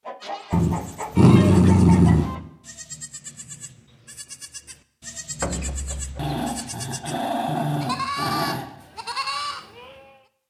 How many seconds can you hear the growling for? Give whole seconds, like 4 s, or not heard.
4 s.